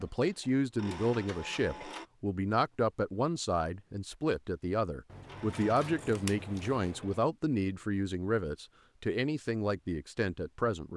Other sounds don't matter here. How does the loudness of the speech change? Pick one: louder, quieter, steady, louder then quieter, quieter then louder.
steady.